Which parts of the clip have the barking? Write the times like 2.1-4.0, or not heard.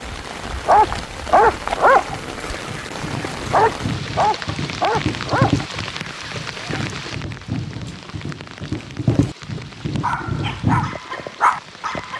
0.7-6.8, 10.0-12.1.